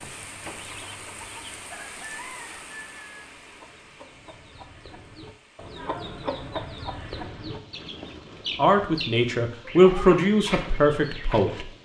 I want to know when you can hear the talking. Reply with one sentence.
The talking can be heard from 8.6 to 11.7 s.